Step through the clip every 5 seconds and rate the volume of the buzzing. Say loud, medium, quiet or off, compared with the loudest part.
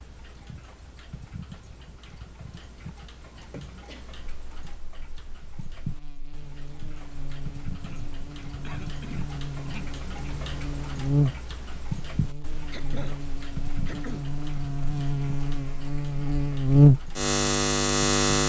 off, quiet, medium, loud.